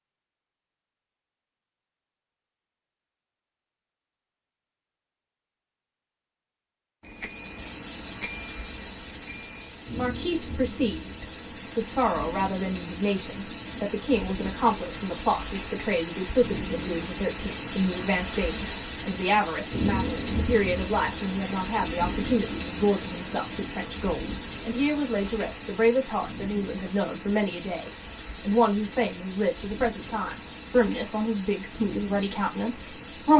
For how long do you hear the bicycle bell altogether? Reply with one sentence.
You can hear the bicycle bell for 3 seconds altogether.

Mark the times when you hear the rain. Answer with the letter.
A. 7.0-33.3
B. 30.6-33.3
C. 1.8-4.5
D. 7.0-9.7
A.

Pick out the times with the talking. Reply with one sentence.
The talking can be heard from 9.9 to 33.3 s.